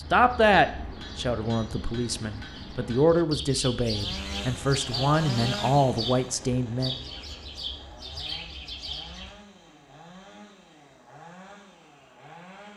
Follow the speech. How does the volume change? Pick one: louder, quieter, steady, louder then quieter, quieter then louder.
quieter then louder.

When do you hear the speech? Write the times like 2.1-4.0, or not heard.
0.1-7.0.